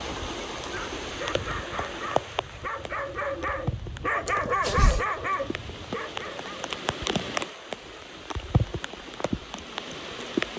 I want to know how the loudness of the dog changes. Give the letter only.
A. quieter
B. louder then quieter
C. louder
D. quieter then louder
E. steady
B.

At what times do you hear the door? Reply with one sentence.
The door can be heard from 4.2 to 5.0 s.